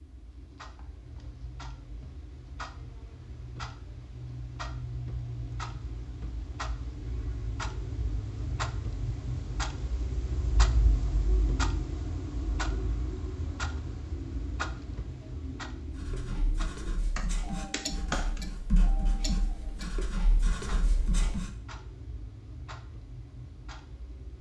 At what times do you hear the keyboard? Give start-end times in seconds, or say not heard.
17.1-18.4.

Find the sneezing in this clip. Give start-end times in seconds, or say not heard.
not heard.